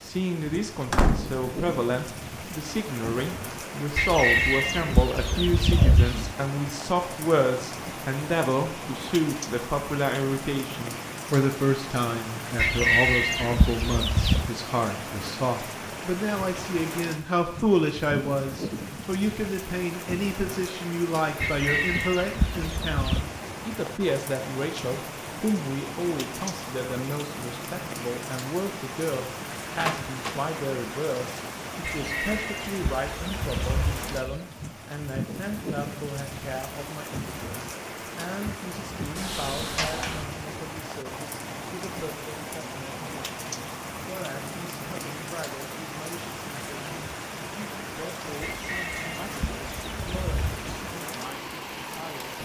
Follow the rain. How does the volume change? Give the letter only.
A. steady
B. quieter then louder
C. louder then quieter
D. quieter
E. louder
A.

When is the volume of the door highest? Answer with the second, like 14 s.
1 s.